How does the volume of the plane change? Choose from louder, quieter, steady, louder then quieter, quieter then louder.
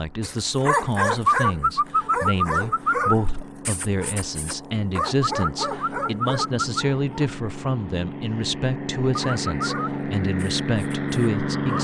louder.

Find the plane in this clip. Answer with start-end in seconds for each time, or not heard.
0.0-11.7.